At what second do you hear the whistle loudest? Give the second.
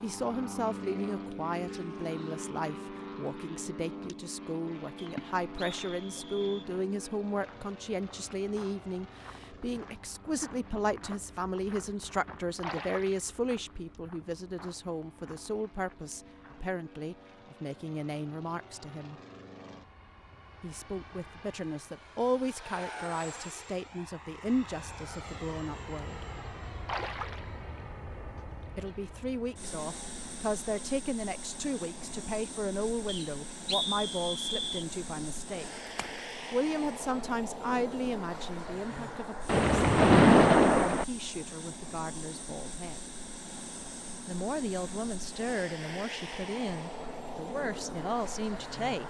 34 s.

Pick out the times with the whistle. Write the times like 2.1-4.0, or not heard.
5.0-6.7, 33.0-34.9.